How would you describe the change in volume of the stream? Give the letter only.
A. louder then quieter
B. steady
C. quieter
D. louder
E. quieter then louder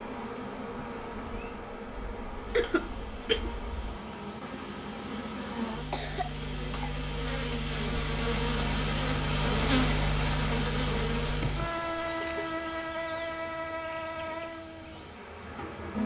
A.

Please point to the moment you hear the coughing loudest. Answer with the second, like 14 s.
3 s.